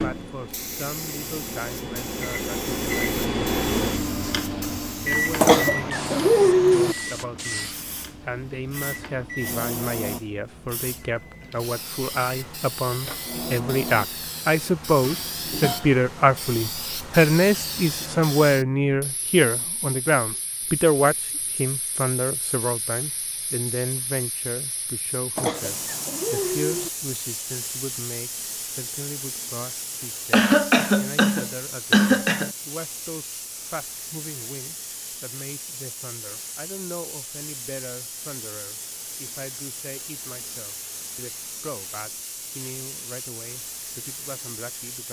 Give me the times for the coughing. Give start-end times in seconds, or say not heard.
5.4-7.0, 25.4-26.9, 30.3-32.5.